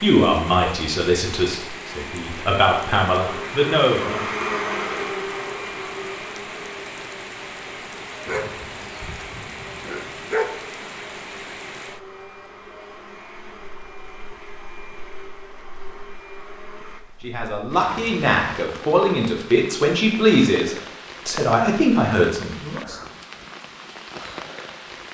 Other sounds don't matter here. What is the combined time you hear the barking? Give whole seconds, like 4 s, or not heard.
2 s.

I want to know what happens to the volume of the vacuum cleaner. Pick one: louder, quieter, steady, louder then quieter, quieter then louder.
quieter.